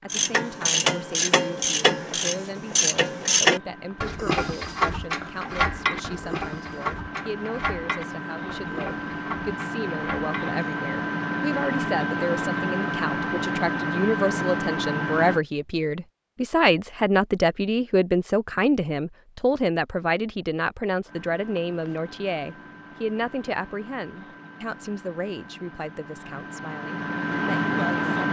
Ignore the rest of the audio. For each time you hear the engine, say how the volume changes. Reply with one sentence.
You can hear the engine from 0.0 to 15.4 s, getting louder; and from 21.1 to 28.2 s, getting louder.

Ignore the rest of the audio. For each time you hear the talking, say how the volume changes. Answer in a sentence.
You can hear the talking from 0.0 to 28.1 s, getting louder then quieter.